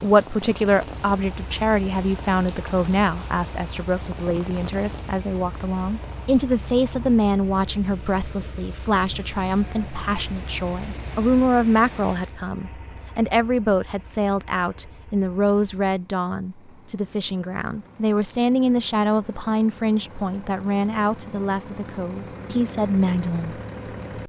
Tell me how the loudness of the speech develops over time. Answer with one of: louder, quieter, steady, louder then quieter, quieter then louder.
steady.